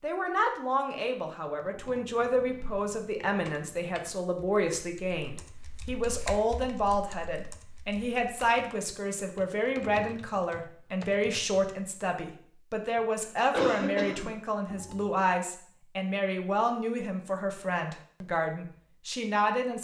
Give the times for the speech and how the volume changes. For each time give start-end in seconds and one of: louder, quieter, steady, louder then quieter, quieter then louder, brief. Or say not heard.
0.0-19.7 steady.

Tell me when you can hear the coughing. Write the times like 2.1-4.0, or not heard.
13.3-14.3.